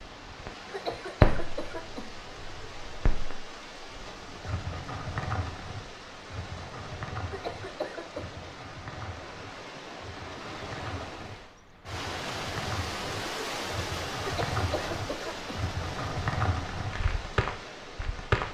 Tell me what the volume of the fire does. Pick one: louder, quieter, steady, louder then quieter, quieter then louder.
quieter then louder.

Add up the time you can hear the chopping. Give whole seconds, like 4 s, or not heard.
not heard.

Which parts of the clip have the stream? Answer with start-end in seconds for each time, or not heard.
0.0-18.5.